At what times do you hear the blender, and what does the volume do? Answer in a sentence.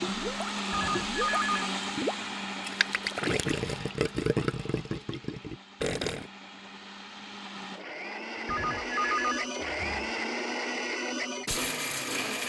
The blender can be heard from 0.0 to 12.4 s, getting quieter then louder.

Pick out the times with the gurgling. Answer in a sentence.
The gurgling can be heard from 0.0 to 6.3 s.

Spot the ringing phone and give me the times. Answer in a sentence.
You can hear the ringing phone from 0.7 to 1.6 s and from 8.4 to 10.1 s.